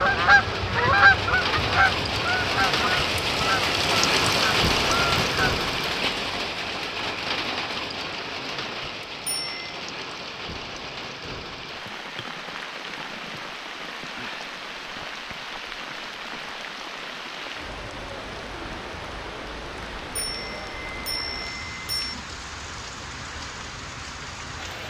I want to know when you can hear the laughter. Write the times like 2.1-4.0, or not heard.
not heard.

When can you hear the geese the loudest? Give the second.
1 s.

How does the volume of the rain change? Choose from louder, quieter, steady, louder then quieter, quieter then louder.
quieter.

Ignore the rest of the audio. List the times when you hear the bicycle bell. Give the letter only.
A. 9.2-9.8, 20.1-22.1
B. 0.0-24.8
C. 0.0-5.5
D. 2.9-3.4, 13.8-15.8
A.